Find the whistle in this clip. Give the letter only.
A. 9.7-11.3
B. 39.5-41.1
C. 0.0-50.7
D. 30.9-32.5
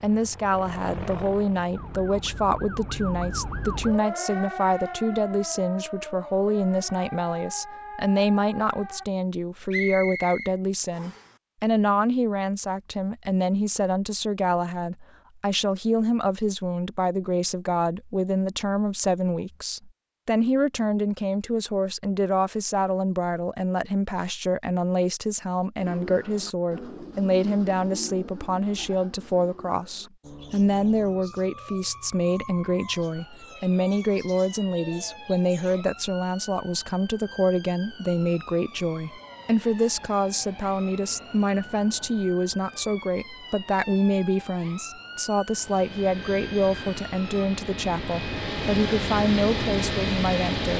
A.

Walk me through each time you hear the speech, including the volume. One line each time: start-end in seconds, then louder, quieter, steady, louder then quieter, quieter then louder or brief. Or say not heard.
0.0-50.7 steady.